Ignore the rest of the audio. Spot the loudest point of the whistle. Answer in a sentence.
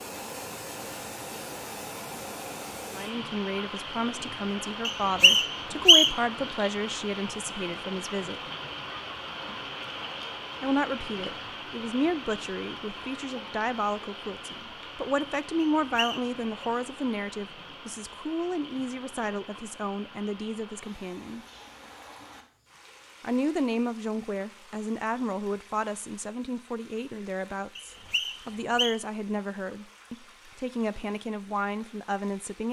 The loudest moment of the whistle is at 6 seconds.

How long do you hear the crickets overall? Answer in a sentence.
You can't hear the crickets here.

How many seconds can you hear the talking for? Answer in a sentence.
The talking can be heard for 26 seconds in total.